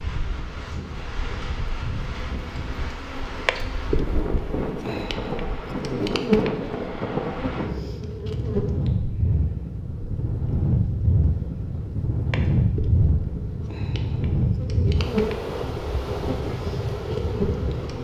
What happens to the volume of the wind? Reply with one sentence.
The volume of the wind goes up.